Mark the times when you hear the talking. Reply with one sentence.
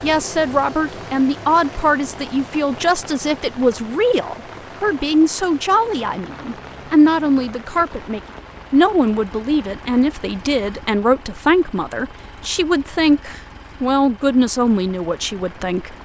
You can hear the talking from 0.0 to 15.9 s.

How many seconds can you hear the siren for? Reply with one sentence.
You can't hear the siren here.